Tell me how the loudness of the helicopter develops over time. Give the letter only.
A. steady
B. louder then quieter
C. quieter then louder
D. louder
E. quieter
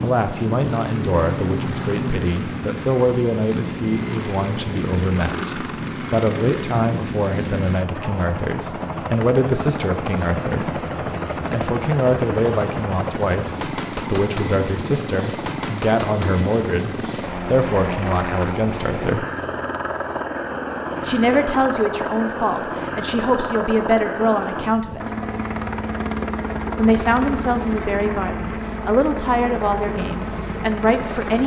A.